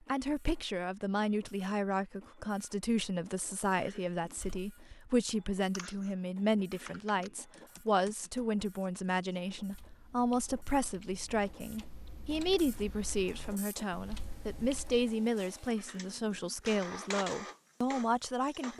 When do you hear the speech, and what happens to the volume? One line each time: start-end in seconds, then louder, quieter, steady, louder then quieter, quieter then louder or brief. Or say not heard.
0.1-18.7 steady.